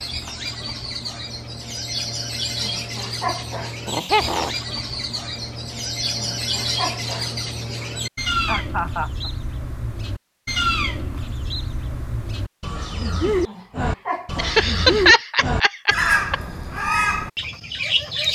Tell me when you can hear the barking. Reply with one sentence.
The barking can be heard from 2.6 to 4.3 s, from 6.2 to 8.0 s and from 13.4 to 15.2 s.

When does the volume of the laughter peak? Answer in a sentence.
The loudest moment of the laughter is at 15 seconds.